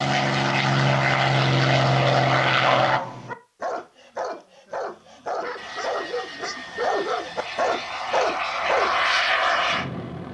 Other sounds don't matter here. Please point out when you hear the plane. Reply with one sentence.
The plane can be heard from 0.0 to 3.0 s and from 5.5 to 10.2 s.